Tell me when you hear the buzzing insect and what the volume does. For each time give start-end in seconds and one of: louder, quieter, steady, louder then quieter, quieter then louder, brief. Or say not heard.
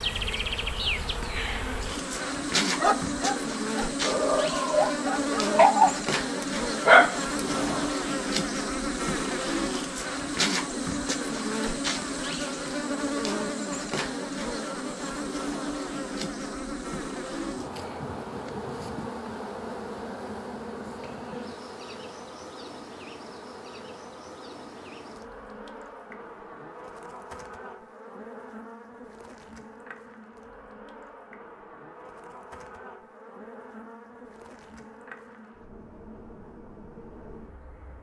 0.0-37.9 quieter.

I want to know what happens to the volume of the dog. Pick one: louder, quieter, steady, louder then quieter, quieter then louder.
louder.